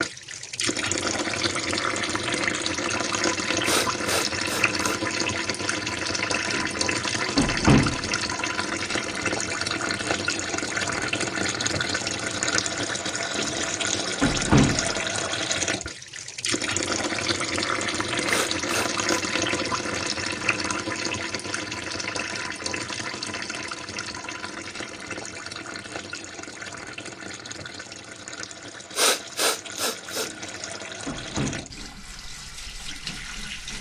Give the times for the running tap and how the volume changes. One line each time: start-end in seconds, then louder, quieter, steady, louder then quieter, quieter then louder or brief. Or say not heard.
0.0-33.7 quieter.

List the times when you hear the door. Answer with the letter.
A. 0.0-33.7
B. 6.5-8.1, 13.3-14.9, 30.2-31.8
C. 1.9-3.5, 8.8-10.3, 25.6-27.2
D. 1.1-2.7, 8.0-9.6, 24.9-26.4
B.